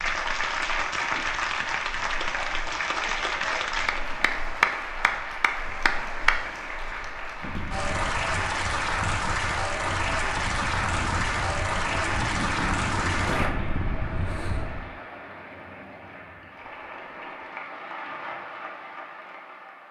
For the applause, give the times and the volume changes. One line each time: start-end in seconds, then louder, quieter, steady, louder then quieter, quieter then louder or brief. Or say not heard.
0.0-19.8 quieter.